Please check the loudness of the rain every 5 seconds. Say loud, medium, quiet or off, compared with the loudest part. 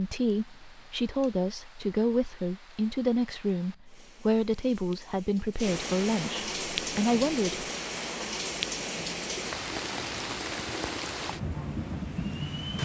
quiet, loud, loud.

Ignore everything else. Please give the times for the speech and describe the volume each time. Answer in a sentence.
The speech can be heard from 0.0 to 7.7 s, at a steady volume.